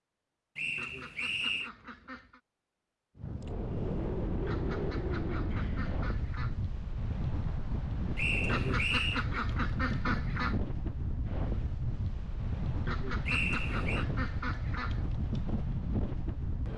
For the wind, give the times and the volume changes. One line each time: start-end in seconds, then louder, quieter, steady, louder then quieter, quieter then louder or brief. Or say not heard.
3.1-16.7 steady.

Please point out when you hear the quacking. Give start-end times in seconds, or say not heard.
0.8-2.4, 4.5-6.6, 8.4-10.6, 12.8-15.1.